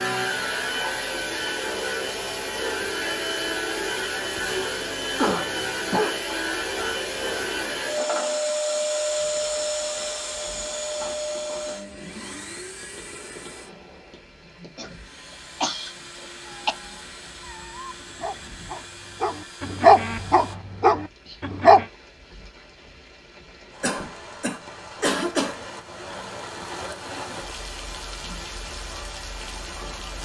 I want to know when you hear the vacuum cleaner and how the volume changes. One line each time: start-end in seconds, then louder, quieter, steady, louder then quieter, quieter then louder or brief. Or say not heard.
0.0-20.6 quieter.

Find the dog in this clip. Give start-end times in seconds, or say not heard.
16.4-21.9.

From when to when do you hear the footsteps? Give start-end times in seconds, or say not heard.
not heard.